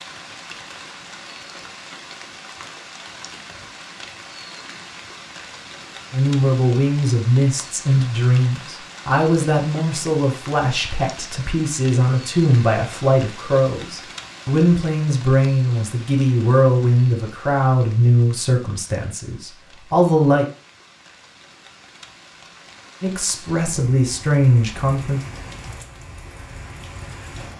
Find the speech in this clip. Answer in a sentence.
The speech can be heard from 6.1 to 20.4 s and from 23.0 to 25.2 s.